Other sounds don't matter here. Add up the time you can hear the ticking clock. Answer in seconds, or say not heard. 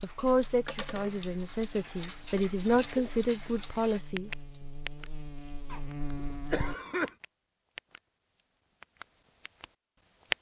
9 s.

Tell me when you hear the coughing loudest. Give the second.
7 s.